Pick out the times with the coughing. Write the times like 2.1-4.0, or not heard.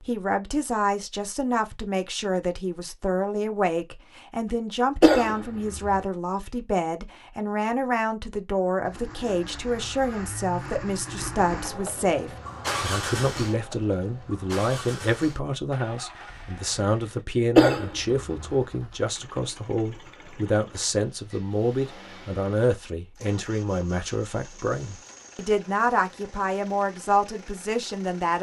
5.0-6.0, 17.6-18.6.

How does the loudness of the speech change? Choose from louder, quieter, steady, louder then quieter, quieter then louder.
steady.